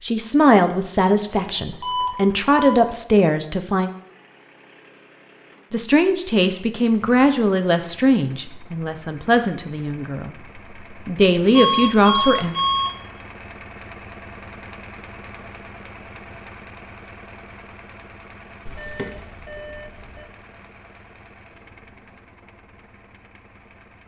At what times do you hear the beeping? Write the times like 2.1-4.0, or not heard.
1.8-2.8, 11.5-12.9, 18.6-20.2.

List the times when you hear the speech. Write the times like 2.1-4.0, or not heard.
0.0-3.9, 5.7-12.6.